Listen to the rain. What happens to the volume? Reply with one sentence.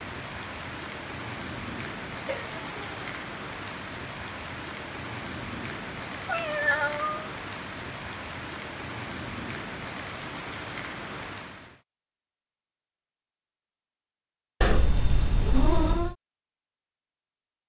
The volume of the rain stays about the same.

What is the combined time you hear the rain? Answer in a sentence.
The rain can be heard for 12 seconds in total.